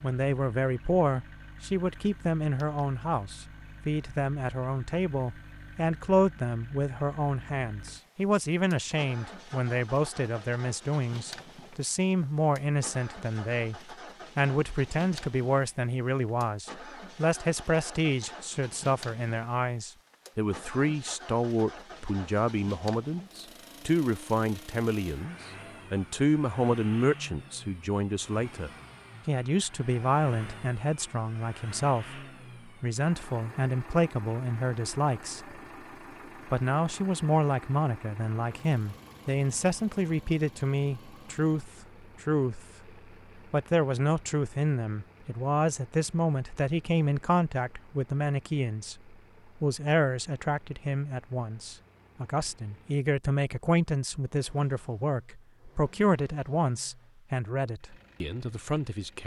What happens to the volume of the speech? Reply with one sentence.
The volume of the speech stays about the same.